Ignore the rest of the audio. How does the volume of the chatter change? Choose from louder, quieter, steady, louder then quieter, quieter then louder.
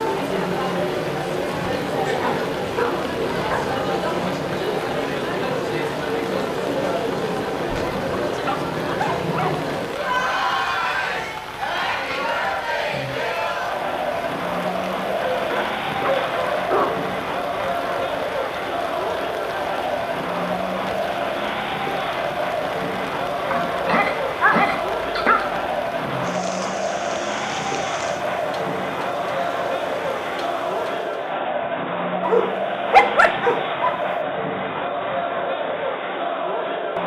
steady.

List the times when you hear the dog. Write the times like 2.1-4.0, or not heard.
2.1-3.8, 8.4-9.6, 15.3-17.0, 23.5-25.6, 32.2-34.2.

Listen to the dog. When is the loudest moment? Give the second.
33 s.